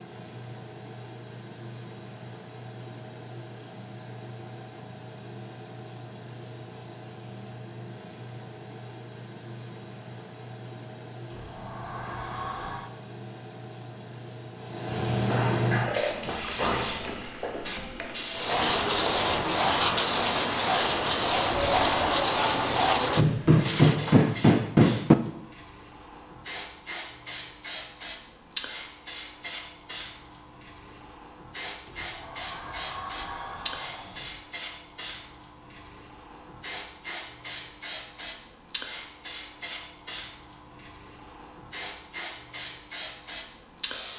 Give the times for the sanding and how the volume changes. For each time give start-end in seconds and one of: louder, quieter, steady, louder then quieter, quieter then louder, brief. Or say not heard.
18.4-24.4 steady.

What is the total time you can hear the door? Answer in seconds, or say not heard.
5 s.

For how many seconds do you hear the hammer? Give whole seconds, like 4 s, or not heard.
4 s.